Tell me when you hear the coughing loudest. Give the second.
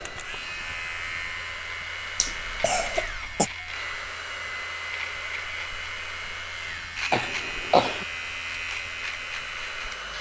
8 s.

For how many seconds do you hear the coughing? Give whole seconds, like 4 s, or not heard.
2 s.